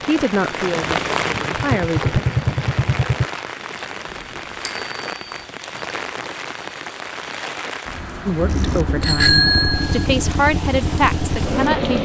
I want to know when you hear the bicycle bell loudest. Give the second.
9 s.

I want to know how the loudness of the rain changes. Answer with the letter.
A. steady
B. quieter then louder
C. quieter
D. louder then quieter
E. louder
C.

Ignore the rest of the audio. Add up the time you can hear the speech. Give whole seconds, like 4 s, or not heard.
6 s.